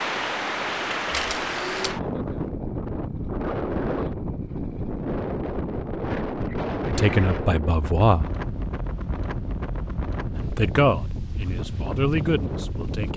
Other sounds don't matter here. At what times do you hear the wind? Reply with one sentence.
You can hear the wind from 0.0 to 13.1 s.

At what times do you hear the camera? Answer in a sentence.
You can hear the camera from 1.1 to 1.9 s.